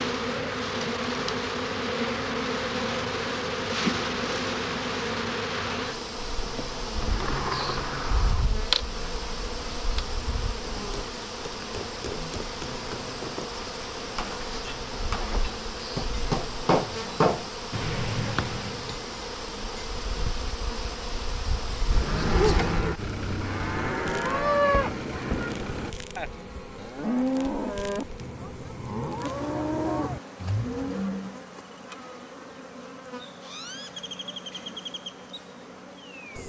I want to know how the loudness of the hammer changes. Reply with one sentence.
The loudness of the hammer goes up.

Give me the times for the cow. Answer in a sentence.
You can hear the cow from 21.9 to 31.4 s.